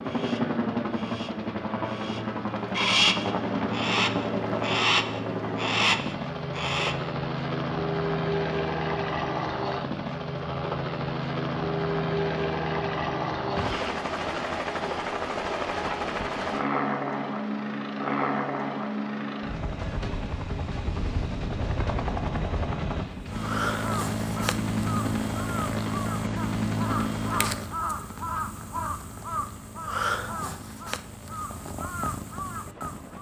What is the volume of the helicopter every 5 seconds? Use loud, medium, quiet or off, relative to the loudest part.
loud, loud, loud, loud, loud, loud, quiet.